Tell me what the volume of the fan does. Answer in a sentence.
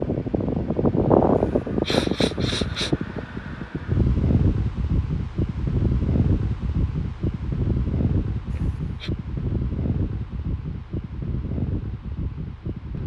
The loudness of the fan goes down.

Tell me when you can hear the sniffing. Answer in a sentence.
You can hear the sniffing from 1.4 to 3.0 s and from 8.5 to 9.1 s.